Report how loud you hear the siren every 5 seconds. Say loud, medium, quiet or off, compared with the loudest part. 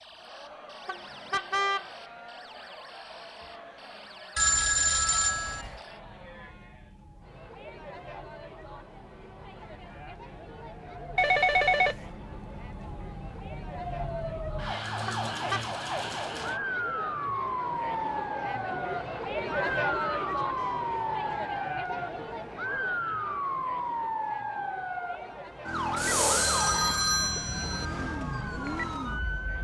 quiet, quiet, medium, loud, loud, loud.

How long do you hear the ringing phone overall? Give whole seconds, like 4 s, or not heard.
4 s.